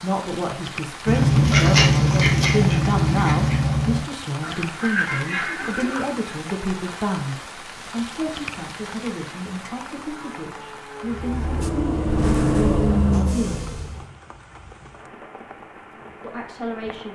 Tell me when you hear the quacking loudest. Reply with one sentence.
The loudest moment of the quacking is at 2 seconds.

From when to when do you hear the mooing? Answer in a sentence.
You can hear the mooing from 9.9 to 11.7 s.